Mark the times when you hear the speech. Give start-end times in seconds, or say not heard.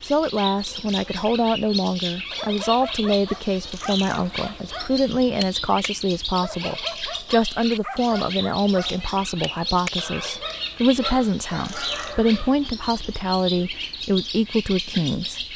0.0-15.4.